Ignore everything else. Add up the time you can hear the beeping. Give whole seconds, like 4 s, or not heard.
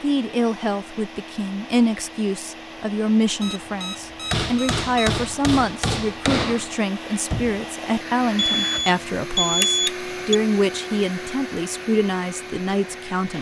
4 s.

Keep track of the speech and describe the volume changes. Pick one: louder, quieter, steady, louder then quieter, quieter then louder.
steady.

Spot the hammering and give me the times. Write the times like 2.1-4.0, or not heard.
4.2-7.6.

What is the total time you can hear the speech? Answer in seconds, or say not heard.
13 s.